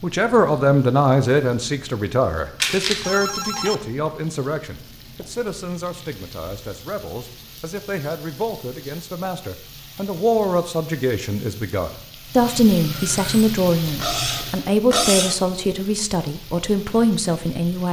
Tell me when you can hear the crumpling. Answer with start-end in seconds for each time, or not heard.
2.6-3.3.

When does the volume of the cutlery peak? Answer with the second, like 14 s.
15 s.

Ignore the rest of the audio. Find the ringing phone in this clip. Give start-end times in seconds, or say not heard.
3.0-3.9.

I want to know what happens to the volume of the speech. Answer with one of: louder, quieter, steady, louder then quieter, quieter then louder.
quieter then louder.